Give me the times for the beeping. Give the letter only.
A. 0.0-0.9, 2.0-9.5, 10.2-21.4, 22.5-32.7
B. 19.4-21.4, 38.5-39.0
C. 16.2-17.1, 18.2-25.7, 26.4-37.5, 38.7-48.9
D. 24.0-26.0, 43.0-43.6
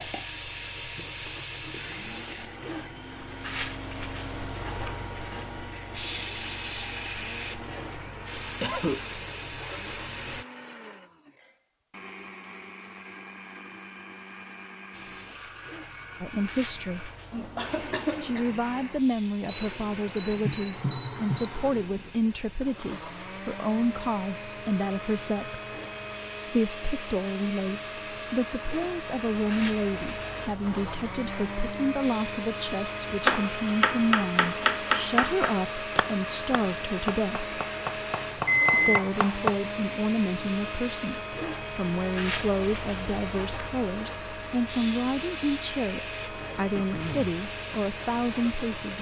B.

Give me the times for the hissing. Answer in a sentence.
You can hear the hissing from 0.0 to 10.4 s and from 14.9 to 48.9 s.